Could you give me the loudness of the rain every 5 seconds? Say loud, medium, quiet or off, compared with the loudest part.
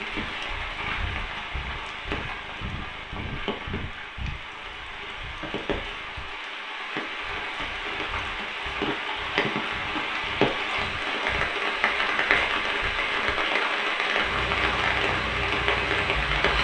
medium, medium, loud, loud.